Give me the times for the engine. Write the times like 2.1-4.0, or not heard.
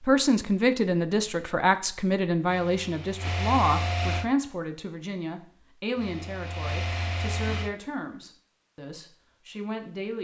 2.5-4.3, 6.0-7.7.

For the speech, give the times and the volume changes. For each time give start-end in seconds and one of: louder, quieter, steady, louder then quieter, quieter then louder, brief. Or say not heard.
0.0-10.1 quieter.